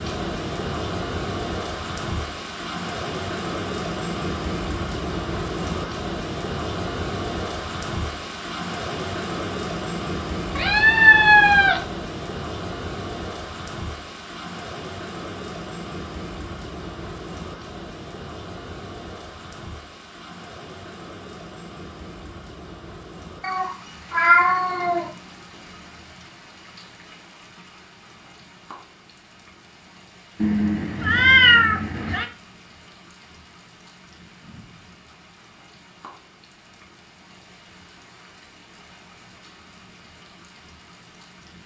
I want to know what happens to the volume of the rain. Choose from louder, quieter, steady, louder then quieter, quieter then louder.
quieter.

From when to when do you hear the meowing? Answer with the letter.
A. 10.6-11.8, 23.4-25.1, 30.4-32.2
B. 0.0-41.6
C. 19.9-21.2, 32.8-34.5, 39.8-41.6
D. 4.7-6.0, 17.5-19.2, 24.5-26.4
A.